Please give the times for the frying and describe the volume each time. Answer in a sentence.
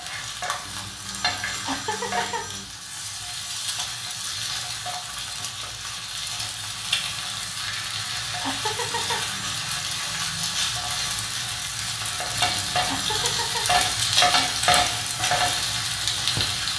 The frying can be heard from 0.0 to 16.7 s, getting louder.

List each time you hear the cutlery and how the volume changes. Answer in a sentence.
You can't hear the cutlery here.